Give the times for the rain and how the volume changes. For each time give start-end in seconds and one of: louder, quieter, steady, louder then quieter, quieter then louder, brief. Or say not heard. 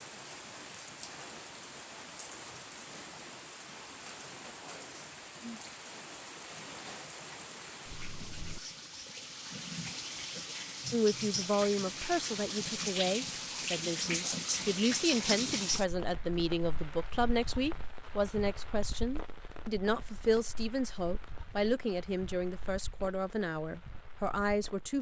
0.0-24.9 louder then quieter.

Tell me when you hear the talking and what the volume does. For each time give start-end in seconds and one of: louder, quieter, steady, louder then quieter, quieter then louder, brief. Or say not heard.
10.9-24.9 steady.